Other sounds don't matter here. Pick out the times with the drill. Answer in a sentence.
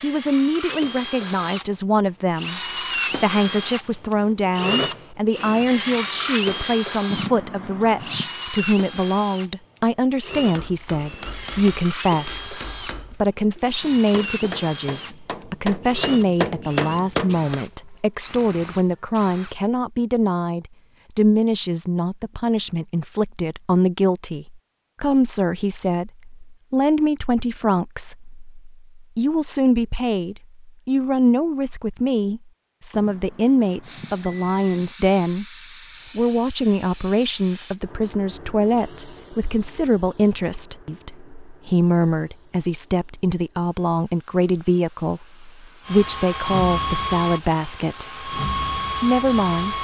You can hear the drill from 0.0 to 19.6 s and from 45.9 to 49.7 s.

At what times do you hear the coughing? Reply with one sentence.
The coughing can't be heard in this clip.